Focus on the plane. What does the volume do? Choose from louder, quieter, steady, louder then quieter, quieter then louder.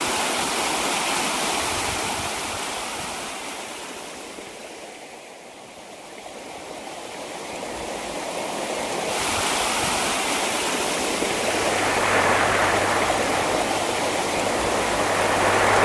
quieter then louder.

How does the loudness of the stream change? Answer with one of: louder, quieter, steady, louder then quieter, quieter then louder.
quieter then louder.